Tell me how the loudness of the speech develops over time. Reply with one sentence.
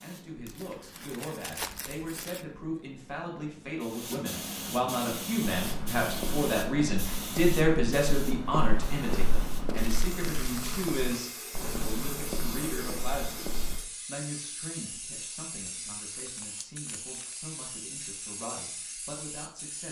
The volume of the speech goes up, then down.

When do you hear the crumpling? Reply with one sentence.
The crumpling can be heard from 0.5 to 2.5 s, from 9.7 to 11.3 s and from 16.1 to 17.4 s.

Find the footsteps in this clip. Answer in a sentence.
You can hear the footsteps from 5.5 to 13.8 s.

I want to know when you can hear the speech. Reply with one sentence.
The speech can be heard from 0.0 to 19.8 s.